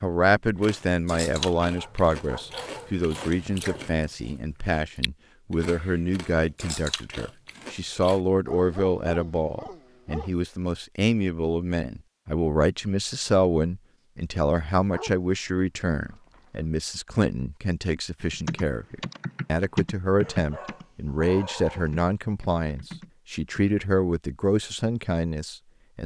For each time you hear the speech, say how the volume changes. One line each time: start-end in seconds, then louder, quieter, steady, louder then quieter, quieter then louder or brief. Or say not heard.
0.0-26.0 steady.